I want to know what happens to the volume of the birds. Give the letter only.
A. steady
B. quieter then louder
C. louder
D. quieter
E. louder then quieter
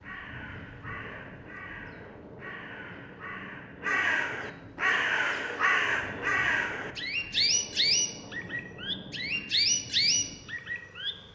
C.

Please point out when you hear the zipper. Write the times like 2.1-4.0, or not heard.
not heard.